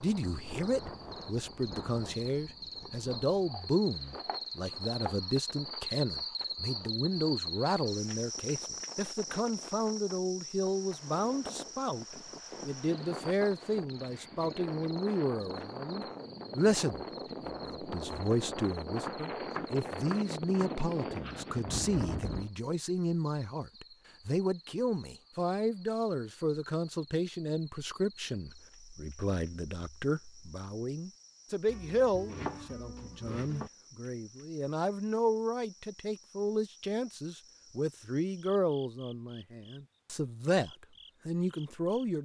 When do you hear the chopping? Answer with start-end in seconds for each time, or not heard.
2.8-5.2, 19.0-20.7, 31.6-33.7.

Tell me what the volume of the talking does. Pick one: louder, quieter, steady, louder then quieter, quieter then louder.
steady.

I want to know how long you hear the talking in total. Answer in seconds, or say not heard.
42 s.